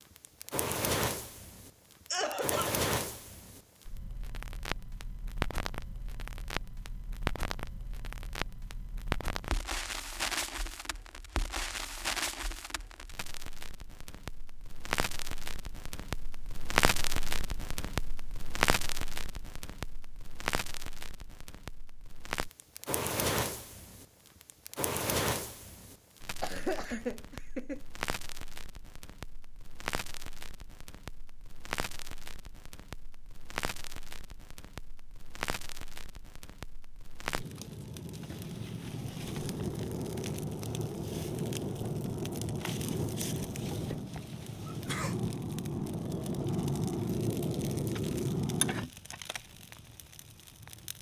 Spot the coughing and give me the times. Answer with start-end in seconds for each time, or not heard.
2.1-2.8, 26.4-27.8, 44.6-45.1.